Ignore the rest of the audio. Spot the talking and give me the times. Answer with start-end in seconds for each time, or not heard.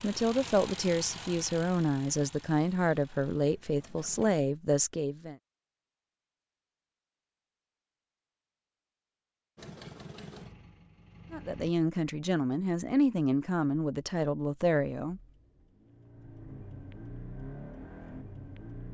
0.0-5.3, 11.3-15.2.